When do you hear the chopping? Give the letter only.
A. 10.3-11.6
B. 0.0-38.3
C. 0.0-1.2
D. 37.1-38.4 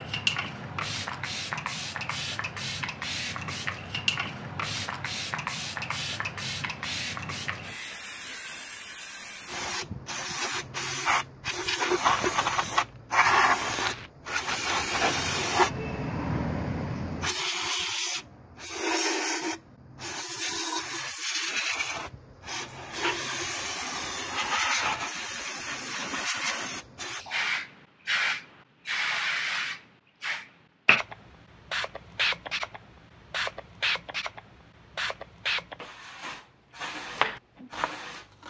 D.